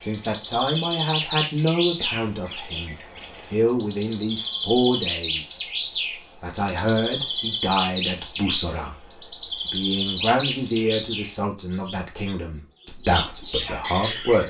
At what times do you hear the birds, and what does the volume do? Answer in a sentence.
You can hear the birds from 0.0 to 14.4 s, at a steady volume.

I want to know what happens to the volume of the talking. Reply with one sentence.
The volume of the talking stays about the same.